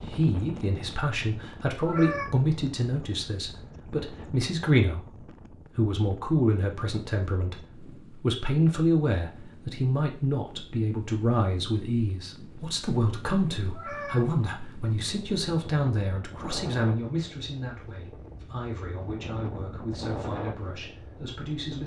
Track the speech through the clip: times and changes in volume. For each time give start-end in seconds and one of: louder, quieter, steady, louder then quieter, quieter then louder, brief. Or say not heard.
0.0-21.8 quieter.